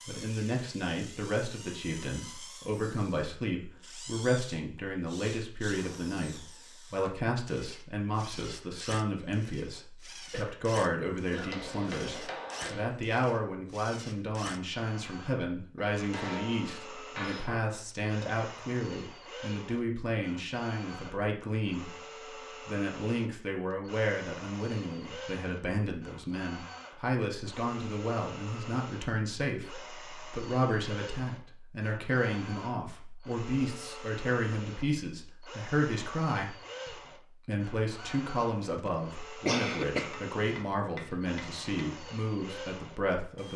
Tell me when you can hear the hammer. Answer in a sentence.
The hammer can be heard from 11.3 to 12.9 s, from 15.8 to 17.6 s and from 40.0 to 41.9 s.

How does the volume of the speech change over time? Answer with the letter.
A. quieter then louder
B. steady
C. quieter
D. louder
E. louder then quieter
B.